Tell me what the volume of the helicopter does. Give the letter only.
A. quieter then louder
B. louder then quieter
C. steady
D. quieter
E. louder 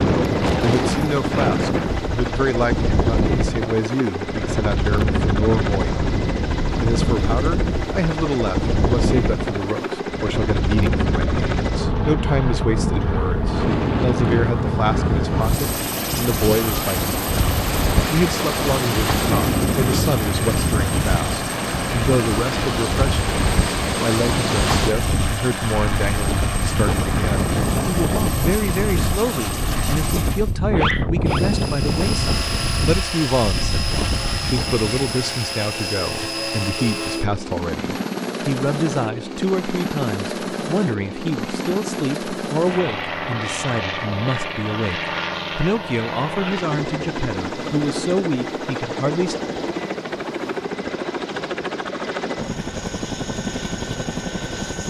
C.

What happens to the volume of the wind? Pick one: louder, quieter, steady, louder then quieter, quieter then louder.
steady.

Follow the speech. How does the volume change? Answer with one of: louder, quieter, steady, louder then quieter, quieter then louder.
steady.